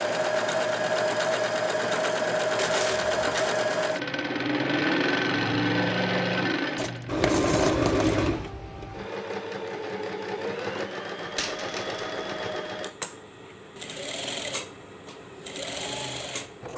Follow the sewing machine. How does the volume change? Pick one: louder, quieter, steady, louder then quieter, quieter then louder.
quieter.